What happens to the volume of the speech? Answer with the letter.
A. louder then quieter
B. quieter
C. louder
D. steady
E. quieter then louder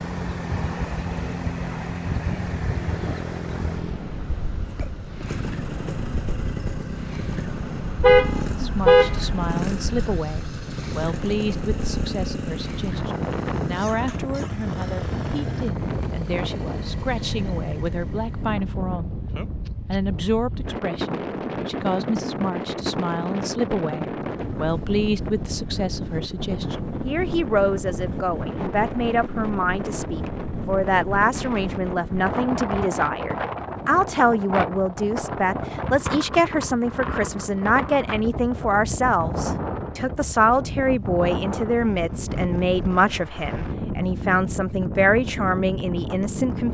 C.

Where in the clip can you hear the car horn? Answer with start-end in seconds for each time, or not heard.
8.0-9.4.